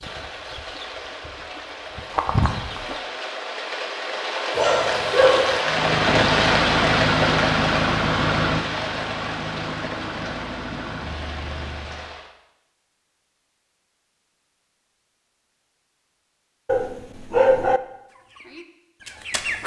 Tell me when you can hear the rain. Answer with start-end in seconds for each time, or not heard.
0.0-12.3.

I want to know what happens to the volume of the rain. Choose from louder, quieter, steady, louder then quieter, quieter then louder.
louder then quieter.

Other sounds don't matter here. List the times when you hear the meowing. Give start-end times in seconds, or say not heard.
not heard.